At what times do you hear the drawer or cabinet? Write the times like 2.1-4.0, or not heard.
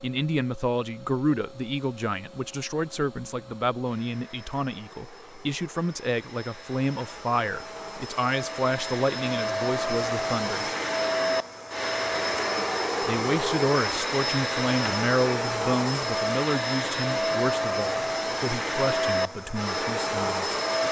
not heard.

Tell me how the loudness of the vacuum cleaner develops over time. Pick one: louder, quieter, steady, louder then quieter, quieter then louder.
louder.